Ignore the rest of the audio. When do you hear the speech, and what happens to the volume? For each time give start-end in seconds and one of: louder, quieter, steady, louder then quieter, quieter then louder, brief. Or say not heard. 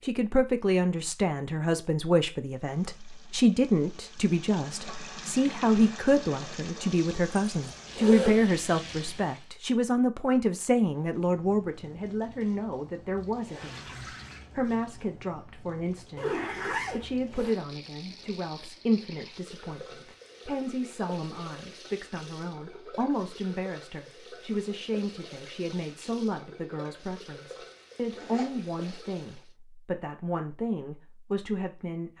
0.0-32.1 quieter.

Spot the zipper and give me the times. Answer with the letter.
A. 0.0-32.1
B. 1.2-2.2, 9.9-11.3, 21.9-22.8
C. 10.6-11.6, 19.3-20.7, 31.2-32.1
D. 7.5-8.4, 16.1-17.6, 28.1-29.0
D.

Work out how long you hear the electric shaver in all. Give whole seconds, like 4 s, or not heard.
not heard.